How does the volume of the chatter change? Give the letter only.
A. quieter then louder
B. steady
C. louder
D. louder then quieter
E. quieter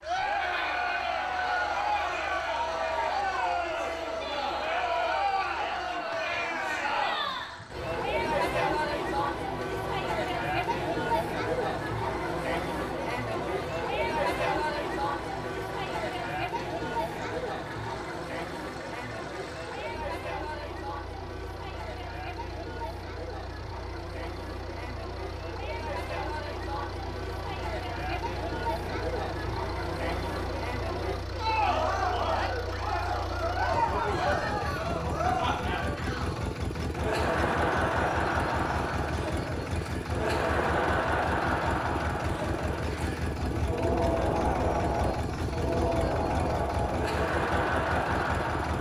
A.